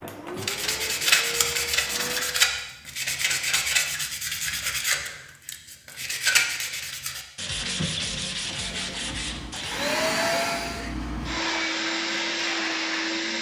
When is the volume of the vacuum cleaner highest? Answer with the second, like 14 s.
10 s.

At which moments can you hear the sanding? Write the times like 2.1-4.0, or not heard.
0.3-9.9.